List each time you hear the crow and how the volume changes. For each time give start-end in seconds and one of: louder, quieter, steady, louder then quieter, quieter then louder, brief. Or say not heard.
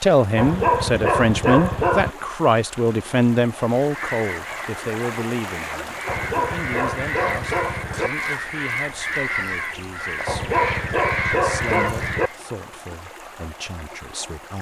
3.7-12.3 louder.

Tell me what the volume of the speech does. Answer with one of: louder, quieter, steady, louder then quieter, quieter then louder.
quieter.